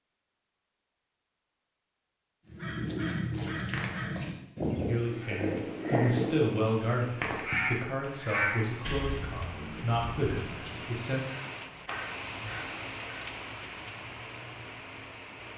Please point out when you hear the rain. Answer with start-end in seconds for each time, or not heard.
5.4-15.5.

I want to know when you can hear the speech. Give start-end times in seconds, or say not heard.
4.8-11.2.